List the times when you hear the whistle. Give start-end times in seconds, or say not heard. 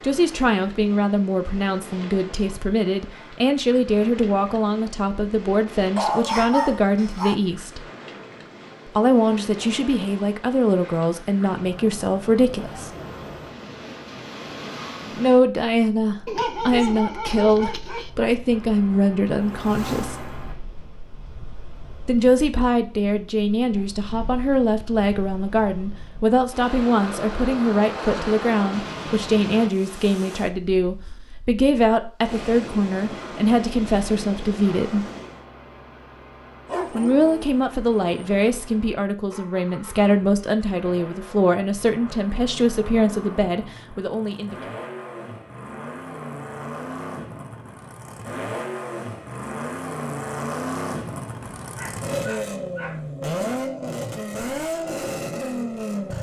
not heard.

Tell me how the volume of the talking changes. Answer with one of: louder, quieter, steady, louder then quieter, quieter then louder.
steady.